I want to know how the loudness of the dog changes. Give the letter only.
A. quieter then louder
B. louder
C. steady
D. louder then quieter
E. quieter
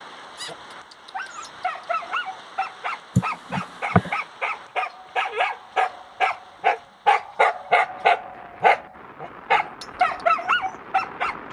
B.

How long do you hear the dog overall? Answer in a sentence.
The dog can be heard for 11 seconds in total.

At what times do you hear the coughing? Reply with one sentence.
The coughing can be heard from 3.1 to 4.2 s.